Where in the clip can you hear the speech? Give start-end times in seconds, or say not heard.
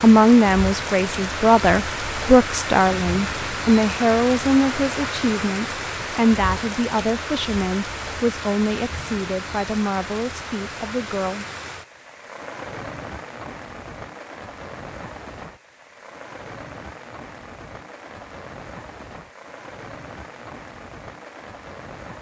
0.0-11.4.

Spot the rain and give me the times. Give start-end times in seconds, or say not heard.
0.0-22.1.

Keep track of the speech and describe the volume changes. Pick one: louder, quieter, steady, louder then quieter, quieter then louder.
quieter.